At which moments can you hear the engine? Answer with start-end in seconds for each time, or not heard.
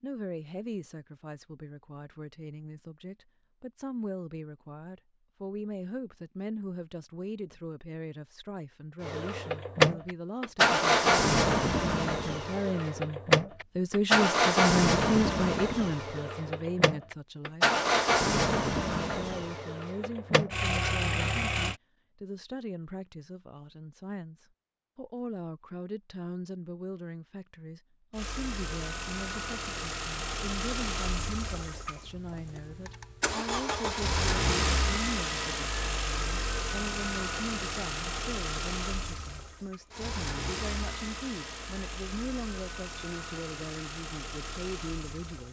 9.0-21.8, 28.1-45.4.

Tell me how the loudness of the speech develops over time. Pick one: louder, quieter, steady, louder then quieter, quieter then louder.
louder then quieter.